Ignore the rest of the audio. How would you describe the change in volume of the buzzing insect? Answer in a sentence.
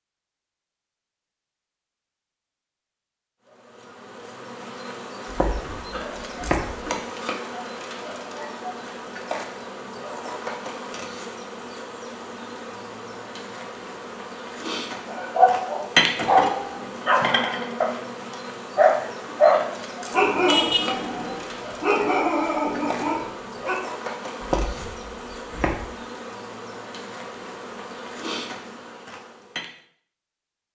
The volume of the buzzing insect goes up, then down.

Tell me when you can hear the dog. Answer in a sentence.
You can hear the dog from 15.1 to 23.8 s.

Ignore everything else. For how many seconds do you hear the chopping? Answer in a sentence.
The chopping can be heard for 3 seconds in total.